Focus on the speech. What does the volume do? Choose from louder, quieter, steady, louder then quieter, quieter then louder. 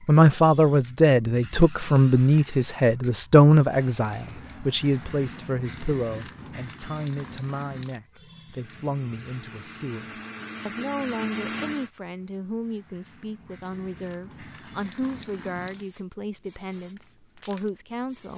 quieter.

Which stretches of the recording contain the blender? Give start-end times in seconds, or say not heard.
8.4-11.9.